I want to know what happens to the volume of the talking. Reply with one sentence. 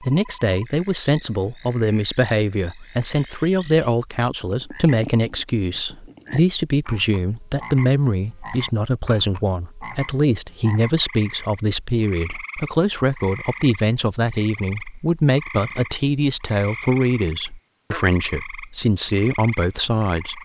The volume of the talking stays about the same.